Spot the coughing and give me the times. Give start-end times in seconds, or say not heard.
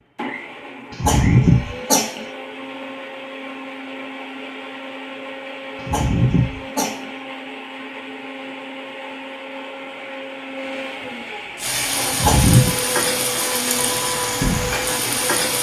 0.9-2.2, 5.8-7.1, 12.1-12.7.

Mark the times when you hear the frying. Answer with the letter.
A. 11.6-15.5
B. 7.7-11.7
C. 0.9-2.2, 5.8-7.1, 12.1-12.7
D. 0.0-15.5
A.